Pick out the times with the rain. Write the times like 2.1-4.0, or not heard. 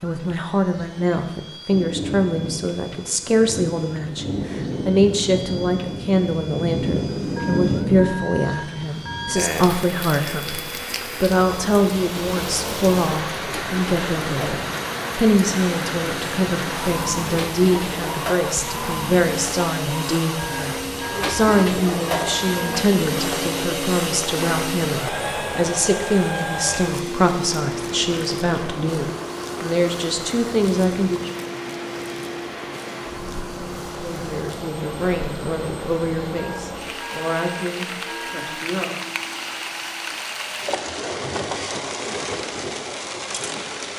0.0-43.9.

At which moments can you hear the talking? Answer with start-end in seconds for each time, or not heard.
0.0-10.6, 11.2-31.2, 34.0-38.9.